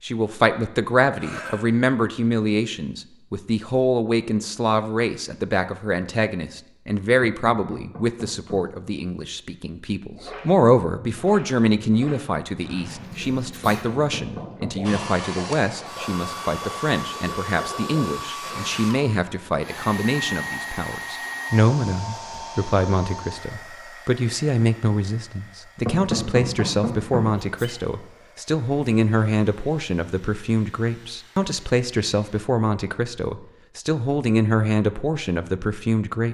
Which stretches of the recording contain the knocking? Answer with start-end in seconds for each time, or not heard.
7.2-8.8, 13.6-15.2, 25.9-27.4.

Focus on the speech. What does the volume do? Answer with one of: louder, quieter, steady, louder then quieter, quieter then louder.
steady.